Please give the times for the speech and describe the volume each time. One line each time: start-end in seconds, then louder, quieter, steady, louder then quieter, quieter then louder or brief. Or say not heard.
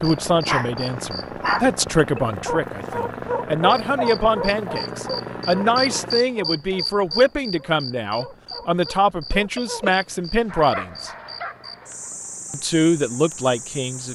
0.0-11.1 steady
12.5-14.1 brief.